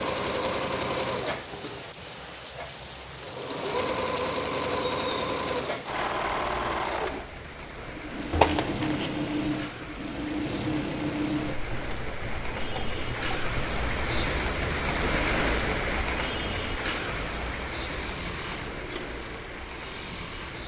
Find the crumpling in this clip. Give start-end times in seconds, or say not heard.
8.3-9.2.